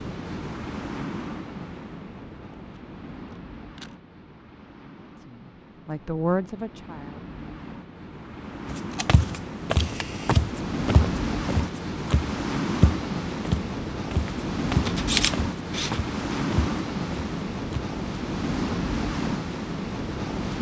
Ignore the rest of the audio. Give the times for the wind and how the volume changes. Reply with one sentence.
You can hear the wind from 0.0 to 20.5 s, getting quieter then louder.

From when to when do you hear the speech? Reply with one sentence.
You can hear the speech from 5.0 to 7.3 s.